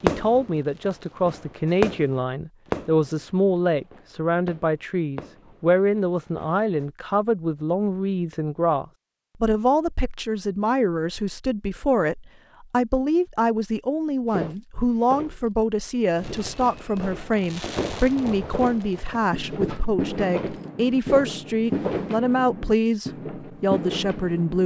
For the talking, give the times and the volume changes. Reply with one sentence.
The talking can be heard from 0.0 to 24.6 s, at a steady volume.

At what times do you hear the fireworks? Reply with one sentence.
The fireworks can be heard from 0.0 to 6.8 s and from 16.1 to 24.6 s.